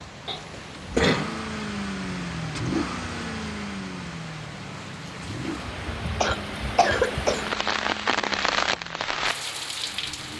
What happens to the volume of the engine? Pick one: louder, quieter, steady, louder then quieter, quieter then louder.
quieter.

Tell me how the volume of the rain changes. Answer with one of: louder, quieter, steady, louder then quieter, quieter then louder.
louder.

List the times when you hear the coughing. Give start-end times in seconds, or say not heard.
0.2-1.4, 6.2-7.5.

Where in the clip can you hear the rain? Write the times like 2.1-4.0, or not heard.
0.0-10.3.